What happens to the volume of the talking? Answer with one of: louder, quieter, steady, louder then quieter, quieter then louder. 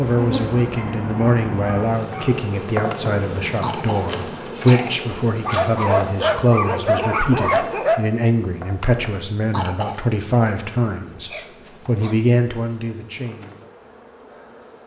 steady.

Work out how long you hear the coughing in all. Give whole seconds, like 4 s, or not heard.
3 s.